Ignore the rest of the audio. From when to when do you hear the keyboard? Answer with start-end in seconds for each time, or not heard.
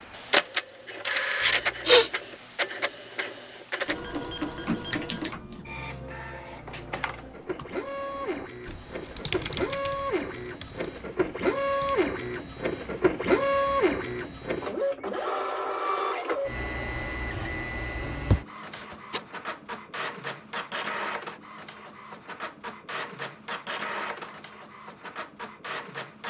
4.6-12.1.